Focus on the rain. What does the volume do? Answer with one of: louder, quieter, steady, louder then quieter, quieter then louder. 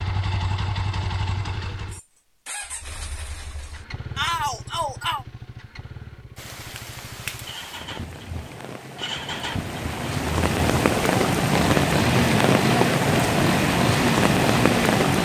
louder.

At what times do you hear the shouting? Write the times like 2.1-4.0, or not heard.
4.2-5.2.